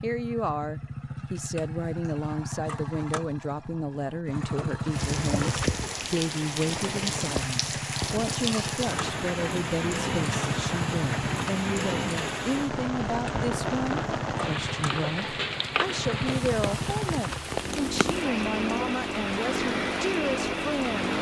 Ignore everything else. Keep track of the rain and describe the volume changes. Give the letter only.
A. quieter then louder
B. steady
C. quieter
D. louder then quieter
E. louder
B.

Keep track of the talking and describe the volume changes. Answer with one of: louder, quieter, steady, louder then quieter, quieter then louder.
steady.